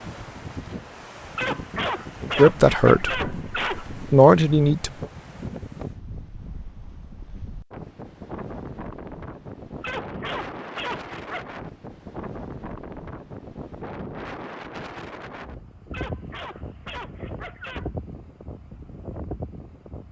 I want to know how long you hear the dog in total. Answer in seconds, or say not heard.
6 s.